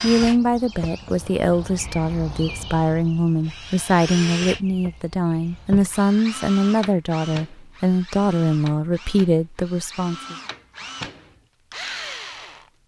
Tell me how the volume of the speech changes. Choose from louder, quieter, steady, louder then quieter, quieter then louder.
steady.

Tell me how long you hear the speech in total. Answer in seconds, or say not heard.
10 s.